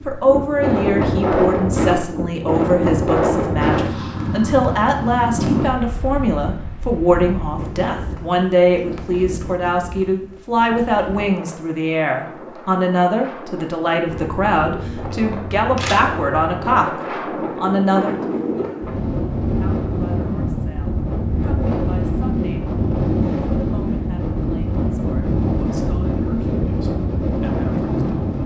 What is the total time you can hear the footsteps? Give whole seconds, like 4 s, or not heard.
not heard.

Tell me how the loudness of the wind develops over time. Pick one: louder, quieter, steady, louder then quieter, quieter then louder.
quieter then louder.